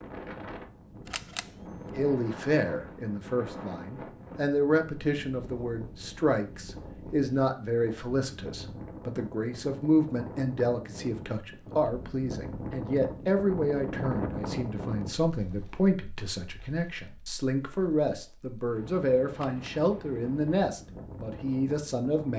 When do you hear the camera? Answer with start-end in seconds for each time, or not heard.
1.1-1.5, 19.3-19.8.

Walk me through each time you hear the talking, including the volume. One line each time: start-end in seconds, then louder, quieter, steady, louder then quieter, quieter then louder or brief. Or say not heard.
1.9-22.3 steady.